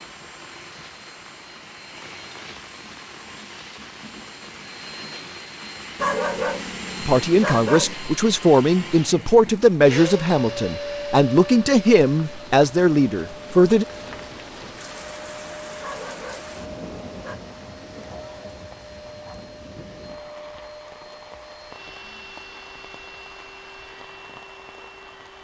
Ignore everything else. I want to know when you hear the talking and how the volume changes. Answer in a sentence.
The talking can be heard from 7.0 to 13.8 s, at a steady volume.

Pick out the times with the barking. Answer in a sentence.
You can hear the barking from 6.0 to 8.0 s and from 15.8 to 17.4 s.